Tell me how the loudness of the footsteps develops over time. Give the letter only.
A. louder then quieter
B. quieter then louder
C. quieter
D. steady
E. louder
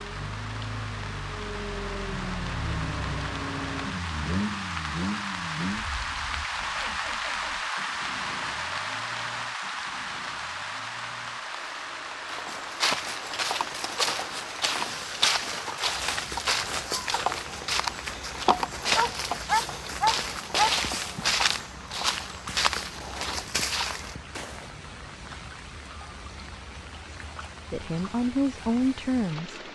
D.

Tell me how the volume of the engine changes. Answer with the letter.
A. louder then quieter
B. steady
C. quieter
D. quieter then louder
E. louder
C.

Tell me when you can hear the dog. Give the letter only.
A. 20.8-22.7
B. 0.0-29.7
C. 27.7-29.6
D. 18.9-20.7
D.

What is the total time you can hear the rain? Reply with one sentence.
The rain can be heard for 30 seconds in total.